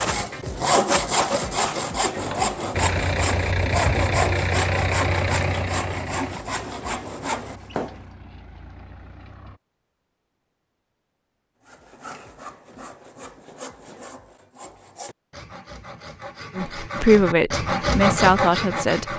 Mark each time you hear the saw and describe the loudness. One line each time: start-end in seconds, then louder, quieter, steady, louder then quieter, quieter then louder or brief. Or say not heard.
0.0-8.0 quieter
11.6-19.1 louder.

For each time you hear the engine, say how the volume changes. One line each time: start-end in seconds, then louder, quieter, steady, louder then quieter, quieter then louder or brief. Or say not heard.
2.7-9.6 quieter.